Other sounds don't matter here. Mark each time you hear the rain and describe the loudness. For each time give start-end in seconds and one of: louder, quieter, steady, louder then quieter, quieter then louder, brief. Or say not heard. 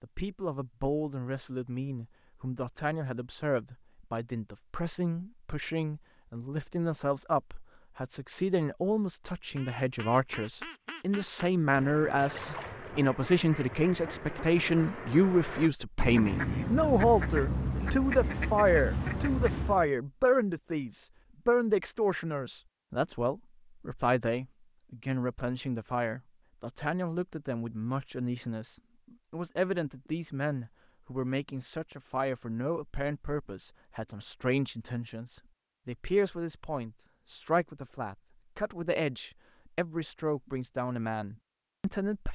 not heard.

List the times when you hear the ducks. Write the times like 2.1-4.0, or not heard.
9.6-19.9.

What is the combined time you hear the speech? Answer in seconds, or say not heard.
42 s.